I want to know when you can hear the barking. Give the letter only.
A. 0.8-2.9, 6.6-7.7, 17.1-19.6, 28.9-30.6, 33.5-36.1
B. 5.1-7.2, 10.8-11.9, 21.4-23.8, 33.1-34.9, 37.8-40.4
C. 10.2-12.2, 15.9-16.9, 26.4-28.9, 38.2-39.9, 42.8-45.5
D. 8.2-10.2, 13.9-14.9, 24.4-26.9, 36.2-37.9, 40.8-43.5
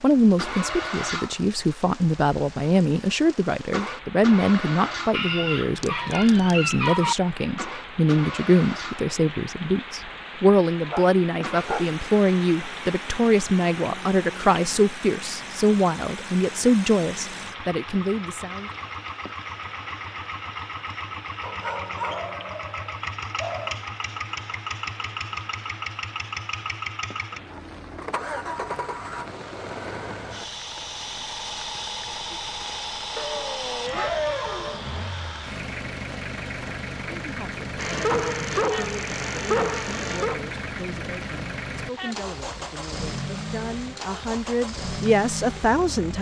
B.